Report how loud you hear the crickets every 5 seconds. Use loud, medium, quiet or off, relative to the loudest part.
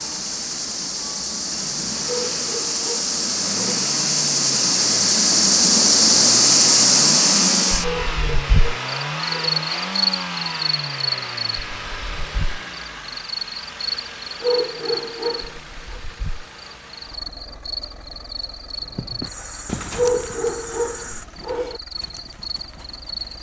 medium, loud, medium, quiet, quiet.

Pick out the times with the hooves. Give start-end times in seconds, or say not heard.
18.8-23.3.